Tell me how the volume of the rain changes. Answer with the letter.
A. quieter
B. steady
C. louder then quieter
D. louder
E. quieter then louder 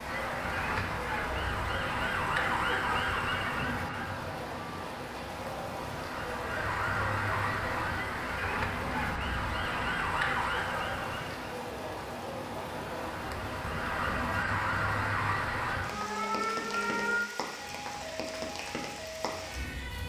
B.